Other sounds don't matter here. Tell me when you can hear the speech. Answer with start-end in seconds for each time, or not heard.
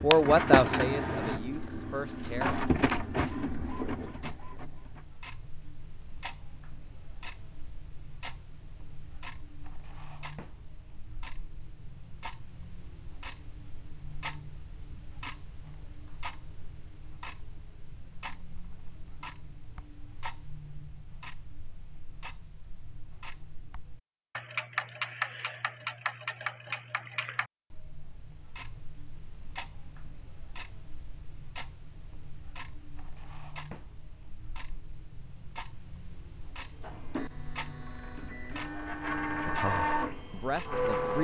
0.0-2.6, 39.3-41.1.